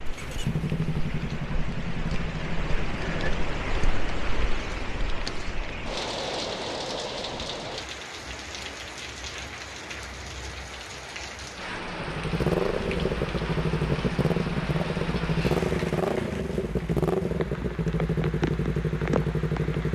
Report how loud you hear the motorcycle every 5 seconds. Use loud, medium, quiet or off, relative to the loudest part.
medium, off, loud, loud.